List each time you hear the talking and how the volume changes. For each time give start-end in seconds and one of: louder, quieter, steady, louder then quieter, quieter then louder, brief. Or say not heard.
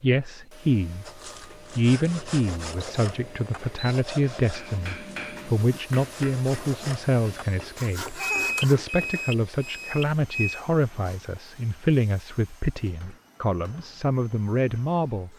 0.0-1.1 brief
1.8-15.3 steady.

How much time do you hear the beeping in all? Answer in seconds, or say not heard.
4 s.